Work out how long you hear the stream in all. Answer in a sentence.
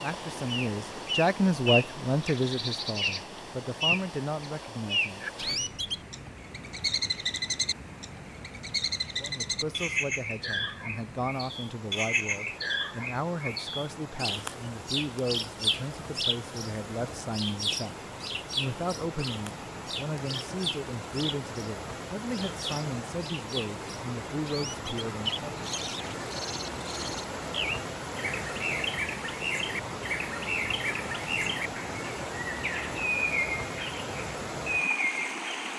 You can hear the stream for 36 seconds altogether.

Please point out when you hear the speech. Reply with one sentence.
The speech can be heard from 0.0 to 5.2 s and from 9.2 to 25.6 s.